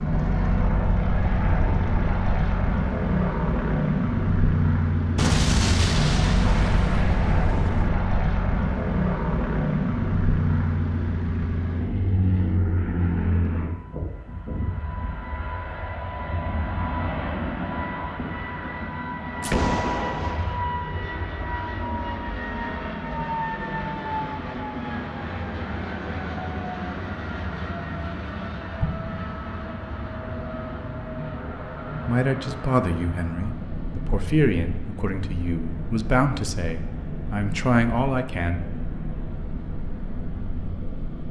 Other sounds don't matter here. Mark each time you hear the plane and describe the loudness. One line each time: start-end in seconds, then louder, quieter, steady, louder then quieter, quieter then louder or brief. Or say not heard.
0.0-41.2 quieter.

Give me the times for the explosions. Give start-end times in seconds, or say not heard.
5.2-7.9, 19.4-20.6, 28.8-29.4.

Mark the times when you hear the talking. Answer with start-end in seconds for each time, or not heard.
32.0-38.6.